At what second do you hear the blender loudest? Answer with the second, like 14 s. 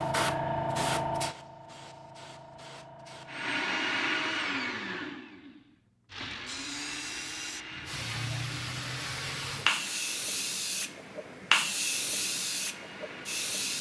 4 s.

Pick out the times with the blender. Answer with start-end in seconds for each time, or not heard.
3.2-13.7.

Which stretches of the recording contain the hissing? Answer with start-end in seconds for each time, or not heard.
0.0-3.9, 6.1-13.7.